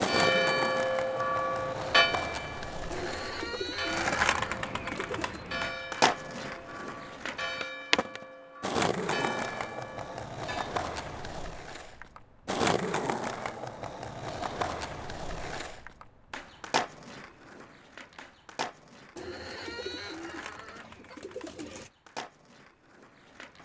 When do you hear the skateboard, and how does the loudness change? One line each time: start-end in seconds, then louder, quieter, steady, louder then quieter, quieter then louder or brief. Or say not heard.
0.0-23.5 quieter.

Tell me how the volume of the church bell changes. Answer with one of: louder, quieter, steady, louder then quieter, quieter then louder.
quieter.